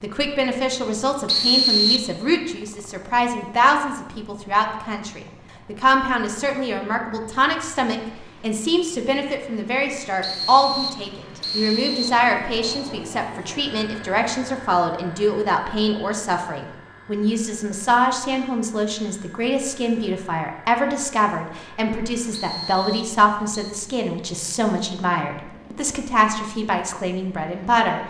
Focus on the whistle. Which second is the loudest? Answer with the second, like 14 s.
2 s.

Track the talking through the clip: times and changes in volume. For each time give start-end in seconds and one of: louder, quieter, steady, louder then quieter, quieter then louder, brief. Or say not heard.
0.0-28.0 steady.